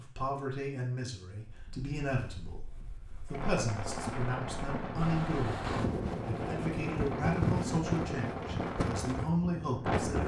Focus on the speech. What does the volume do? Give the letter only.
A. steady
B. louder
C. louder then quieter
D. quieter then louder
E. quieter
A.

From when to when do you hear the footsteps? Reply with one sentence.
The footsteps can't be heard in this clip.